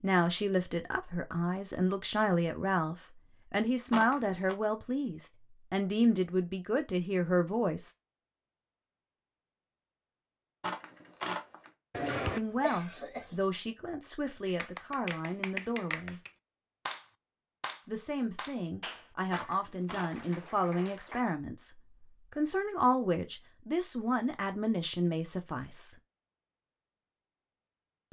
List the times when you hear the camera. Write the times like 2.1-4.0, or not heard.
3.9-4.5, 10.6-11.7, 19.3-20.2.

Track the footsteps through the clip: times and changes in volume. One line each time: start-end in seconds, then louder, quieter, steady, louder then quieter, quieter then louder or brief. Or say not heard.
not heard.